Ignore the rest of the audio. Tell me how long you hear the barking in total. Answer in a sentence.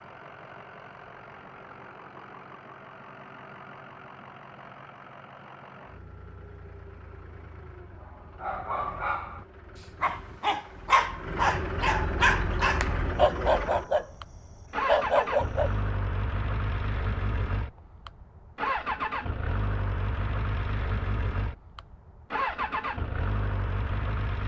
You can hear the barking for 7 seconds altogether.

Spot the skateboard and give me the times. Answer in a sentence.
The skateboard can't be heard in this clip.